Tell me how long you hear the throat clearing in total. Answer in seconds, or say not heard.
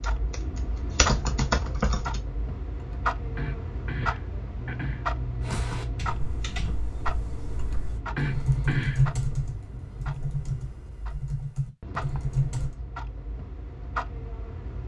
4 s.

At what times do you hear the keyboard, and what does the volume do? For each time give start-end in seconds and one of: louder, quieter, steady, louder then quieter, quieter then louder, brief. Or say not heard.
0.0-2.2 brief
5.4-12.8 louder then quieter.